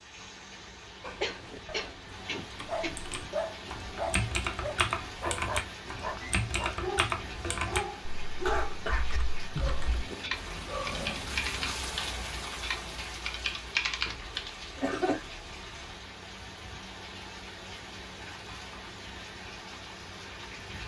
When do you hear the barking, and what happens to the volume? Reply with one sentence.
You can hear the barking from 1.0 to 11.8 s, at a steady volume.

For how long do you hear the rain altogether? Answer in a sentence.
You can hear the rain for 21 seconds altogether.